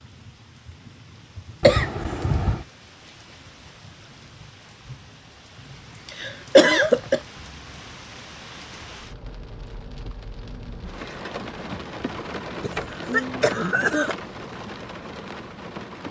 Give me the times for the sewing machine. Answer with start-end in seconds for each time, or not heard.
not heard.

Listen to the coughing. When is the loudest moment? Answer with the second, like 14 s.
7 s.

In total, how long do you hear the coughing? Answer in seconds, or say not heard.
4 s.